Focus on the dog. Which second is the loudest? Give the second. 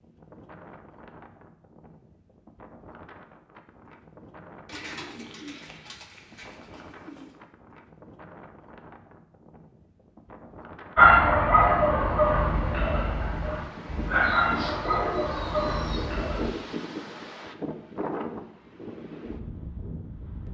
11 s.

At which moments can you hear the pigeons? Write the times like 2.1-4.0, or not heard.
4.7-7.3, 14.2-16.1.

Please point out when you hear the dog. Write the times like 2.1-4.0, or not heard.
10.9-16.5.